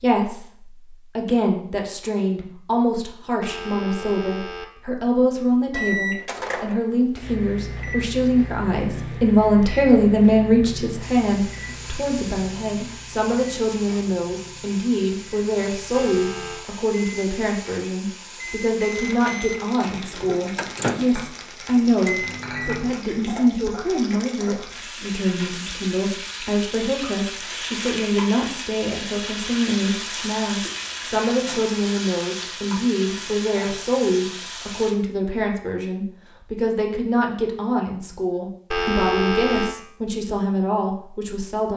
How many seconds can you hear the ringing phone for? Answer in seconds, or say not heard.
3 s.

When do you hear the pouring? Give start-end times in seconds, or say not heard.
not heard.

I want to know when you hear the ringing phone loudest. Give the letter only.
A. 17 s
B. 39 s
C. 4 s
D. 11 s
B.